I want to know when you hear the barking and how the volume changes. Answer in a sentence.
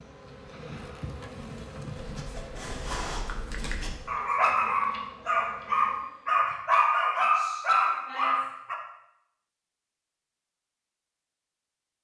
The barking can be heard from 1.9 to 8.8 s, getting louder.